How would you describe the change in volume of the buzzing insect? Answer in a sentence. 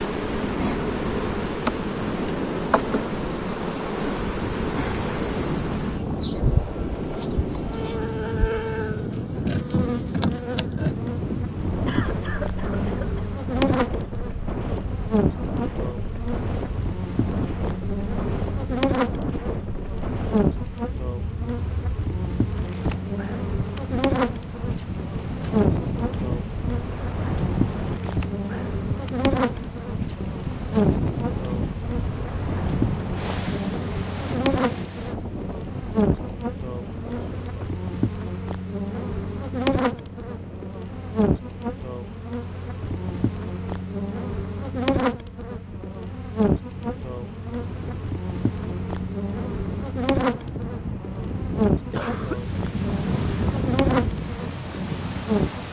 The loudness of the buzzing insect stays about the same.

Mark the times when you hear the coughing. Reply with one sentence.
The coughing can be heard from 11.8 to 13.2 s and from 51.9 to 52.4 s.